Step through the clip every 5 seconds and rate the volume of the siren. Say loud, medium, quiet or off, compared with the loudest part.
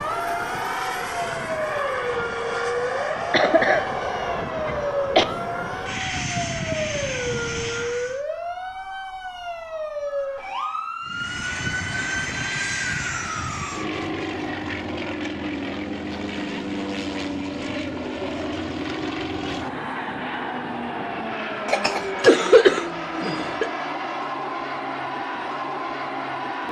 loud, loud, loud, off, off, off.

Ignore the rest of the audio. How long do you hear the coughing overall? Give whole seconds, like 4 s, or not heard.
4 s.